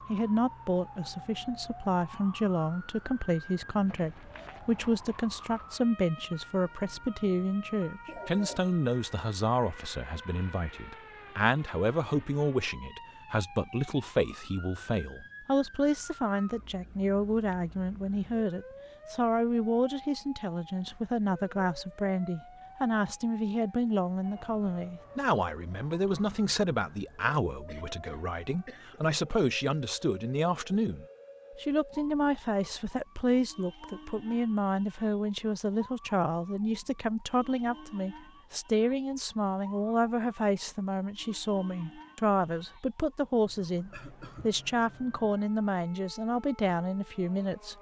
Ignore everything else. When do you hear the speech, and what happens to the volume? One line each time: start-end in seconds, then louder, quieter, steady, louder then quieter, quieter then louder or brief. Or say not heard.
0.1-47.7 steady.